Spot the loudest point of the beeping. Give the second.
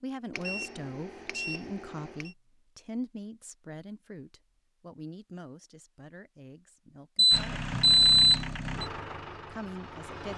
8 s.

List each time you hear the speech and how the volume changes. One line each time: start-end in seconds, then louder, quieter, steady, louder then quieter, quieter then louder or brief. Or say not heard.
0.0-7.6 quieter
9.4-10.3 brief.